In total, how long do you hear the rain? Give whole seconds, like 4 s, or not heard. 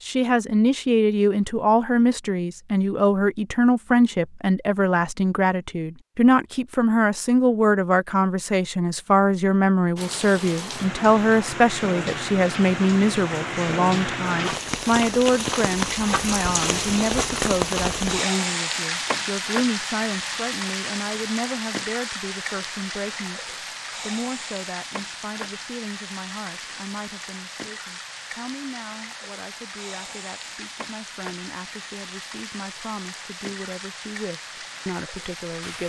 26 s.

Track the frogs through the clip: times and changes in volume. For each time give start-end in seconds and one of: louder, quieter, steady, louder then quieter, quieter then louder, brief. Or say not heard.
not heard.